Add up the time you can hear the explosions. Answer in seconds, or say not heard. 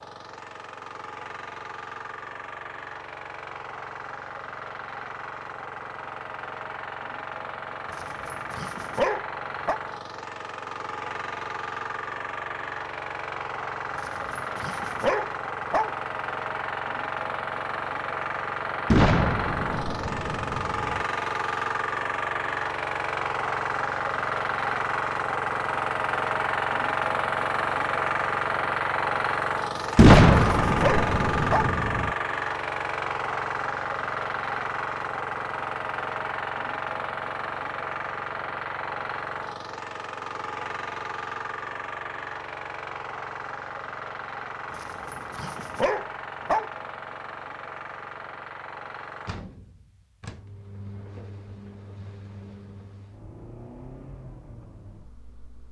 4 s.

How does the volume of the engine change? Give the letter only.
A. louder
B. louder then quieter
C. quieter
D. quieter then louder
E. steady
B.